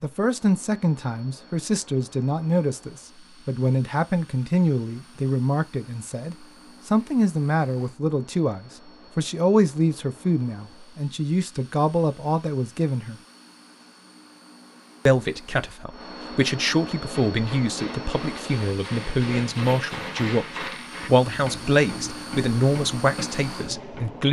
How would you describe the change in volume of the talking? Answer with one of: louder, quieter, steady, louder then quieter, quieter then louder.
steady.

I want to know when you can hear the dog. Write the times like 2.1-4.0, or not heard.
not heard.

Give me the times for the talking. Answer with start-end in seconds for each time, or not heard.
0.0-13.2, 15.1-24.2.